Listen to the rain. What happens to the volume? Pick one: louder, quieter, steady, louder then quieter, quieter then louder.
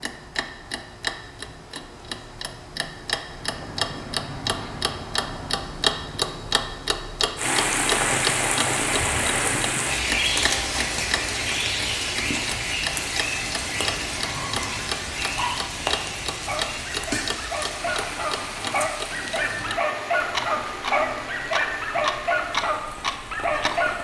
quieter.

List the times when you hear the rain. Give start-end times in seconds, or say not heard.
7.3-23.9.